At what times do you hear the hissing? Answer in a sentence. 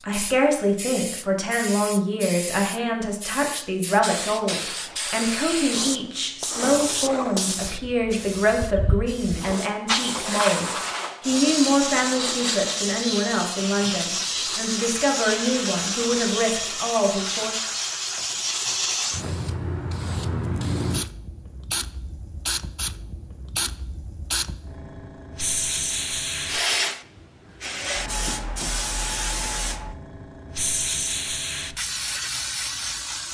You can hear the hissing from 0.1 to 33.2 s.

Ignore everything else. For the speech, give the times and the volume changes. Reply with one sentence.
The speech can be heard from 0.0 to 17.6 s, at a steady volume.